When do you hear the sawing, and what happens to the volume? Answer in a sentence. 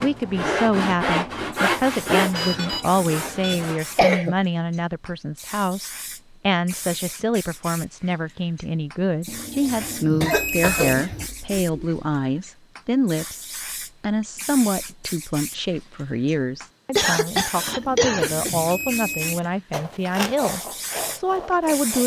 You can hear the sawing from 0.0 to 4.2 s, getting quieter; and briefly from 19.7 to 22.0 s.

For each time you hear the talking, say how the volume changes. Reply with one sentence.
The talking can be heard from 0.0 to 22.0 s, at a steady volume.